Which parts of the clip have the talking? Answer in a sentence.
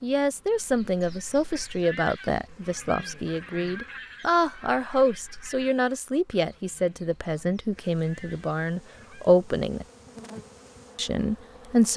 You can hear the talking from 0.0 to 9.8 s and from 10.9 to 11.9 s.